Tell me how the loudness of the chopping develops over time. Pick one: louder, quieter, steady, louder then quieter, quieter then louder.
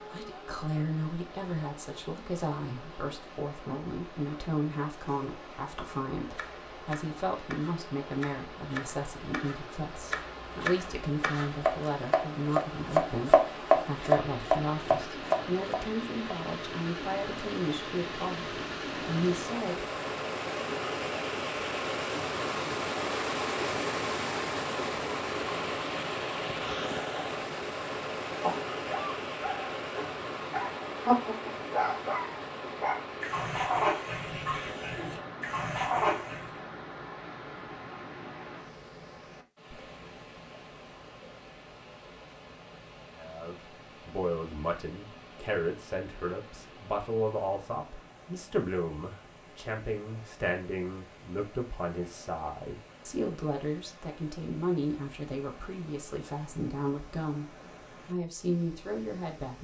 louder.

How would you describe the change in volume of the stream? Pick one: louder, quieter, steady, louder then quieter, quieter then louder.
louder then quieter.